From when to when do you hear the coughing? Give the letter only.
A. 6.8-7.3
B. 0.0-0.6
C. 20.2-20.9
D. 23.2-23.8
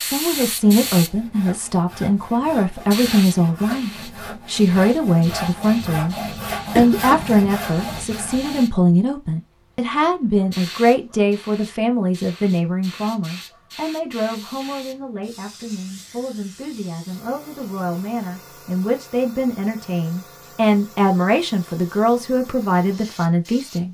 A.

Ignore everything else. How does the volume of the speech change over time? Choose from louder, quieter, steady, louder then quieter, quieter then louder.
quieter then louder.